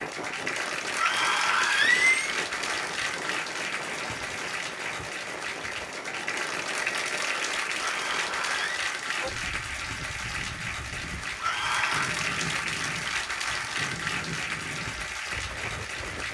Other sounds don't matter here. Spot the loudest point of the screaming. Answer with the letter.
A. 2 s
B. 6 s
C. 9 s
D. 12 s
A.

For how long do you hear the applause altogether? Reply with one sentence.
The applause can be heard for 16 seconds in total.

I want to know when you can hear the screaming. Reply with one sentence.
The screaming can be heard from 0.9 to 2.4 s, from 7.8 to 8.8 s and from 11.4 to 12.2 s.